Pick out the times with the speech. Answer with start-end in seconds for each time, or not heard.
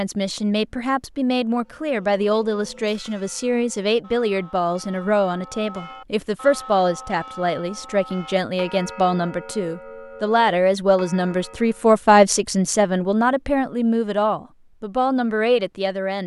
0.0-16.2.